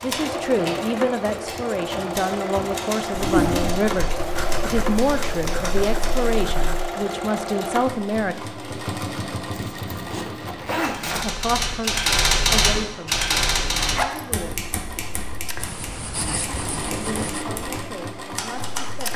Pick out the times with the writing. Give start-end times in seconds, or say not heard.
4.2-6.9, 15.6-17.4.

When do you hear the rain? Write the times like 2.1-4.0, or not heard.
not heard.